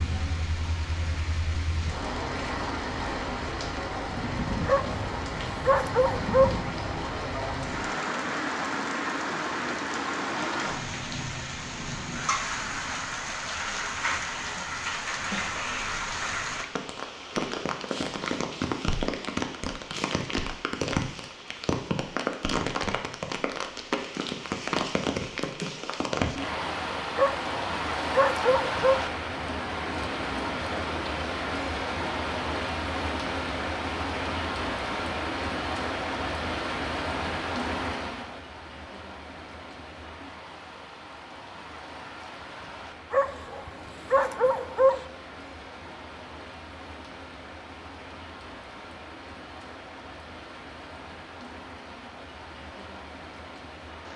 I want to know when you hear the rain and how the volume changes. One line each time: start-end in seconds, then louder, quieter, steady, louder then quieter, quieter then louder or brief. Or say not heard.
0.0-54.1 quieter.